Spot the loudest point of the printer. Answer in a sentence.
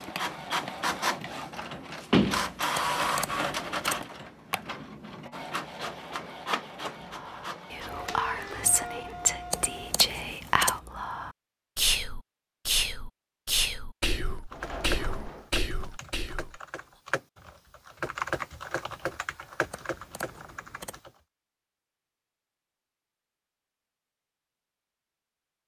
The volume of the printer peaks at 3 seconds.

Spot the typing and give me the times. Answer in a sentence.
You can hear the typing from 14.4 to 21.1 s.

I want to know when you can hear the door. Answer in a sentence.
You can hear the door from 2.1 to 3.8 s and from 14.5 to 15.5 s.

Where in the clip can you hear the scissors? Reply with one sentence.
The scissors can be heard from 2.8 to 4.0 s, from 9.5 to 10.8 s and from 19.7 to 21.0 s.